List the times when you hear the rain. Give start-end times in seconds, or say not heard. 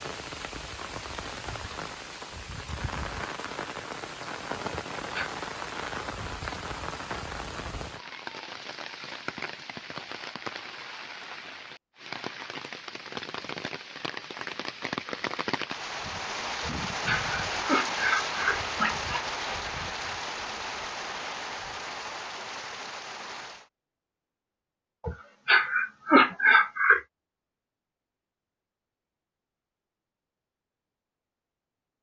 0.0-23.7.